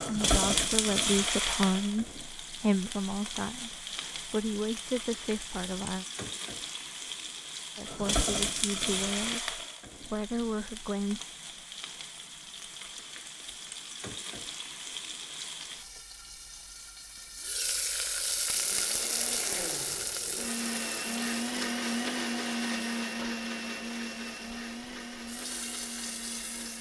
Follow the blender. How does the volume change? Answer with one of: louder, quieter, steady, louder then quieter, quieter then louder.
louder then quieter.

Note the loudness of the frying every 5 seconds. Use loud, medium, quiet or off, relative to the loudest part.
loud, loud, medium, loud, medium, medium.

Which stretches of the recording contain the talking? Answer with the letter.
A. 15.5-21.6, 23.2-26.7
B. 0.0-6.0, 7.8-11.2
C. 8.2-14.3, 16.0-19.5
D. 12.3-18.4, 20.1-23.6
B.